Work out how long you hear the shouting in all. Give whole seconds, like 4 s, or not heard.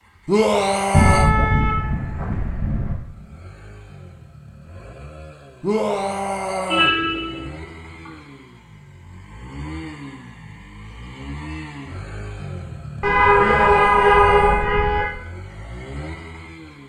4 s.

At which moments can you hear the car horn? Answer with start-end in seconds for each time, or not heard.
0.9-3.0, 6.7-8.1, 13.0-15.1.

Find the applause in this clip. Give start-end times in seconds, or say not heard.
not heard.